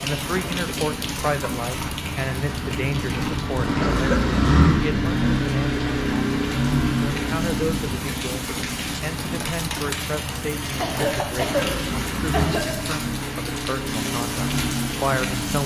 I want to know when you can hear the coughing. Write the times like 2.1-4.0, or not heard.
3.8-4.3, 10.8-12.8.